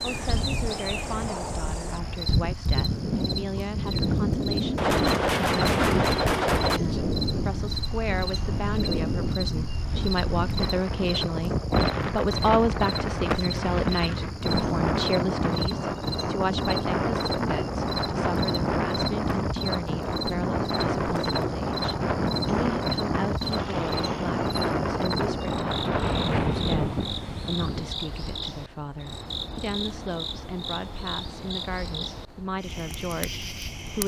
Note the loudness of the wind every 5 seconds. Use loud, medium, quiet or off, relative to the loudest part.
loud, loud, loud, loud, loud, loud, off.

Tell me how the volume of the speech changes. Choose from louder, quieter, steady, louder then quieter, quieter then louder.
louder then quieter.